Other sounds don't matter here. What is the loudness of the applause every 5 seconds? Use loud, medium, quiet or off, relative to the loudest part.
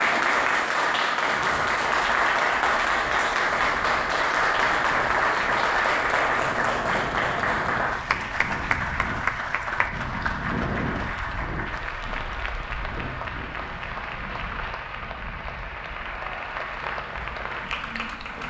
loud, loud, medium, medium.